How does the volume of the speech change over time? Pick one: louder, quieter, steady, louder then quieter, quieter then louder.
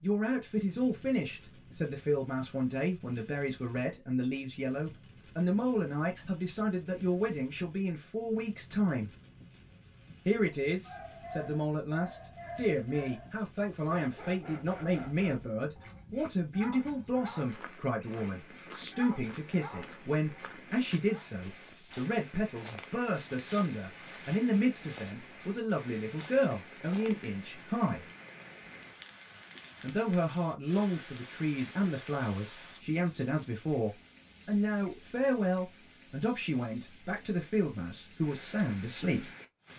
steady.